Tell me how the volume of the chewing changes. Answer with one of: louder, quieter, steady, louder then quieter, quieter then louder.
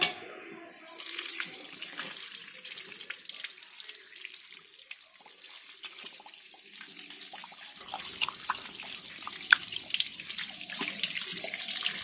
louder then quieter.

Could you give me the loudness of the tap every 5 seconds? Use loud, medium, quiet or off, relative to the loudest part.
medium, medium, loud.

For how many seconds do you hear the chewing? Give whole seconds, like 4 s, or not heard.
4 s.